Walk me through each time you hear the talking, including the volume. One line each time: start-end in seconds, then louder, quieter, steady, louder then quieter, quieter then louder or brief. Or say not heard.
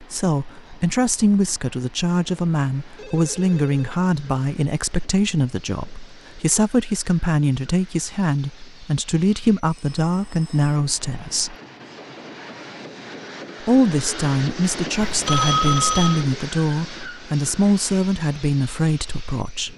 0.0-11.6 steady
13.6-19.7 steady.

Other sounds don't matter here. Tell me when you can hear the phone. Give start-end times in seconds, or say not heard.
3.0-4.0, 9.7-10.7, 15.0-16.2.